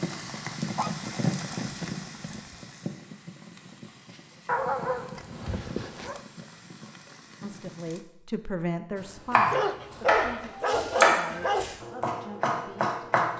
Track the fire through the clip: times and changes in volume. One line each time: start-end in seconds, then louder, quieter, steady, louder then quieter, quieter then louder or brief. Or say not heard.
0.0-8.1 quieter.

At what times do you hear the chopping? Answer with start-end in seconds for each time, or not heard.
9.3-13.3.